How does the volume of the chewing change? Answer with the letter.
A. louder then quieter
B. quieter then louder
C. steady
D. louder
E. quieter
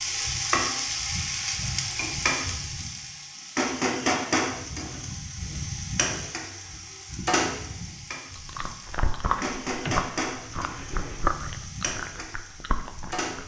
E.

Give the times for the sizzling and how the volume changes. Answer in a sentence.
You can hear the sizzling from 0.0 to 13.4 s, getting quieter.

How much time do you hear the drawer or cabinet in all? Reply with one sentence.
The drawer or cabinet can be heard for 2 seconds in total.